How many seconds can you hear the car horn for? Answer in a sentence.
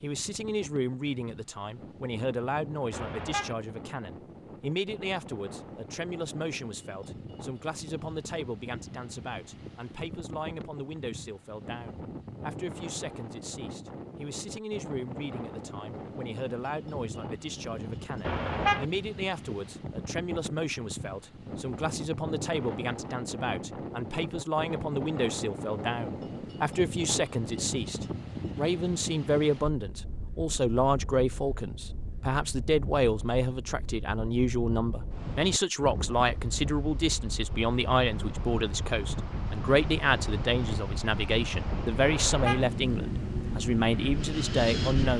You can hear the car horn for 2 seconds altogether.